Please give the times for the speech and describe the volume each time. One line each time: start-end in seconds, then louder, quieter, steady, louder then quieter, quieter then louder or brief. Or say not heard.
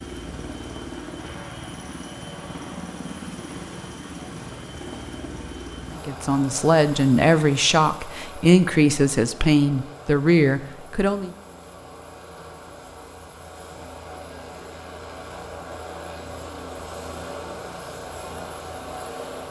5.9-11.3 steady.